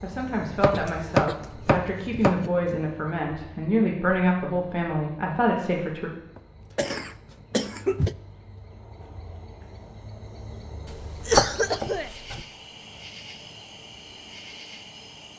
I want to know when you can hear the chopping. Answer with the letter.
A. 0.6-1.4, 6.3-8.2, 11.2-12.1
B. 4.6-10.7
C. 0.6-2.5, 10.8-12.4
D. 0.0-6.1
C.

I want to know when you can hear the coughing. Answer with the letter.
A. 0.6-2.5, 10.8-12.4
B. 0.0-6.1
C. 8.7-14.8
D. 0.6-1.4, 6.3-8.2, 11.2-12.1
D.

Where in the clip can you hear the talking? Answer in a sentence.
You can hear the talking from 0.0 to 6.1 s.